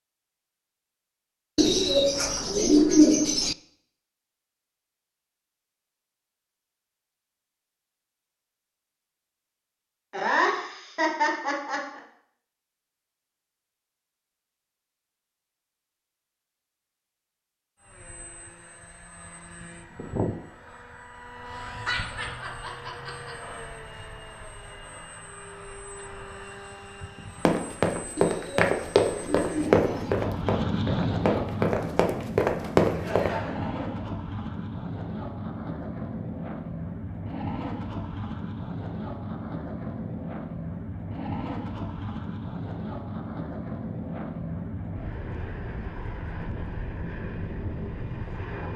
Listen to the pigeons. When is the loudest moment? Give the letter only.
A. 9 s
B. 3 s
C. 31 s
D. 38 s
B.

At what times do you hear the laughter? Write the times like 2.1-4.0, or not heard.
10.1-12.0, 21.5-23.4, 32.9-34.1.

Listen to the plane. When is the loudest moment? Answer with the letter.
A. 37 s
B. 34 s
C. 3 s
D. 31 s
D.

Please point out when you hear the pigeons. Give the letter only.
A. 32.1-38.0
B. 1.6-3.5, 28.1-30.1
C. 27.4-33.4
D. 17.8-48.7
B.